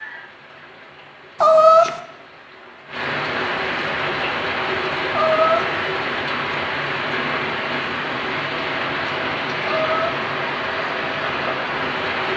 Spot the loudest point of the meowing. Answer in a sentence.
The loudest moment of the meowing is at 2 seconds.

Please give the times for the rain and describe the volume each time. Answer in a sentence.
The rain can be heard from 0.0 to 12.3 s, getting louder.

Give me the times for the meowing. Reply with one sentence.
The meowing can be heard from 1.4 to 2.0 s, from 5.2 to 5.8 s and from 9.7 to 10.2 s.